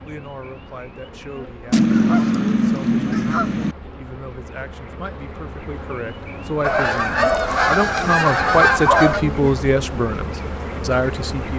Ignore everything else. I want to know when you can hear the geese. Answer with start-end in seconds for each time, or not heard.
1.7-3.8, 6.6-9.2.